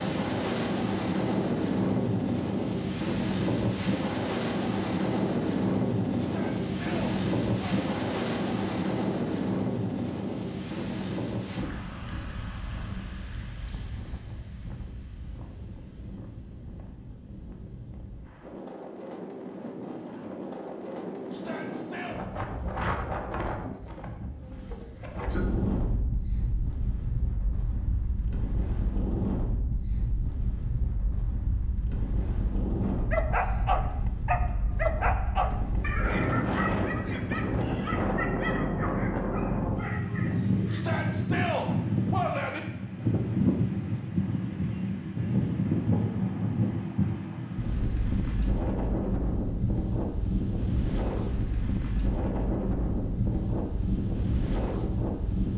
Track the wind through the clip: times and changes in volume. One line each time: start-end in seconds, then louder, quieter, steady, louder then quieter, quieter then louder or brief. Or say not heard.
0.0-55.5 quieter then louder.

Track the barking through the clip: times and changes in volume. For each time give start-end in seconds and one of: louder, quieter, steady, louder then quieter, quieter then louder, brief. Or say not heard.
32.8-40.9 quieter.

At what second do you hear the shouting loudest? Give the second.
42 s.